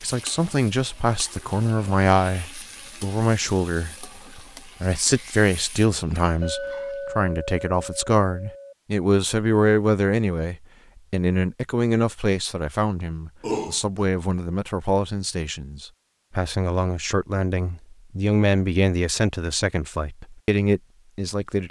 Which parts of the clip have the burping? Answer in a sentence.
You can hear the burping from 13.4 to 14.1 s.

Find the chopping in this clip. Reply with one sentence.
The chopping can't be heard in this clip.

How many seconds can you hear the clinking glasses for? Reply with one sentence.
You can hear the clinking glasses for 2 seconds altogether.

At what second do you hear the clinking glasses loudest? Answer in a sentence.
The loudest moment of the clinking glasses is at 7 seconds.